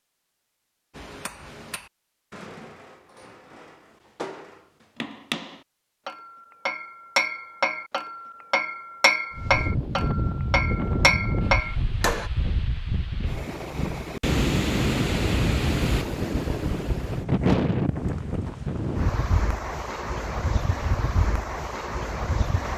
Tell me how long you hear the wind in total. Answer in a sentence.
You can hear the wind for 13 seconds altogether.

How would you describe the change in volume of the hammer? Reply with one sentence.
The volume of the hammer goes up.